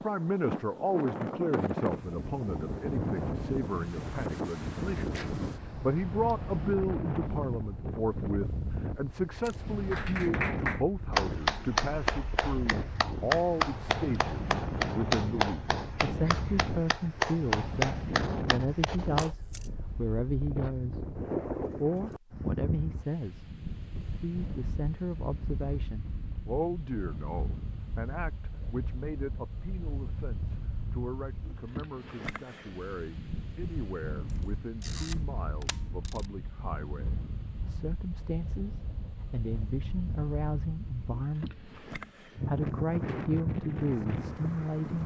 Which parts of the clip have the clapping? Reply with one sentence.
You can hear the clapping from 9.9 to 19.3 s.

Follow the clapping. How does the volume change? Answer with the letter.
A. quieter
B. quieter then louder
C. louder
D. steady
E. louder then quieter
B.